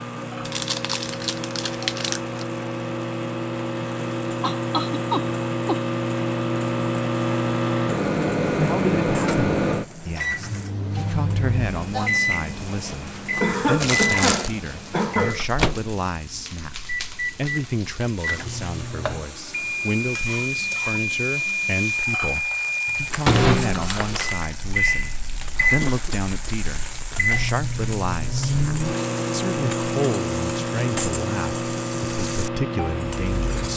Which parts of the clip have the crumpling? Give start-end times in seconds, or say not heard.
0.4-2.5, 13.8-14.6, 23.1-24.4.